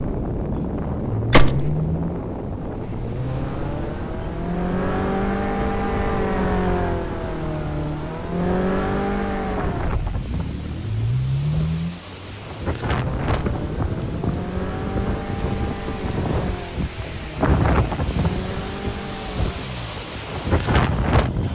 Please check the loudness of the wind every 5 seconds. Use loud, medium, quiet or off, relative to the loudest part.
medium, medium, medium, loud, loud.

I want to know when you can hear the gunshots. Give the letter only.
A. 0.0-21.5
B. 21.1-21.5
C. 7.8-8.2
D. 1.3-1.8
D.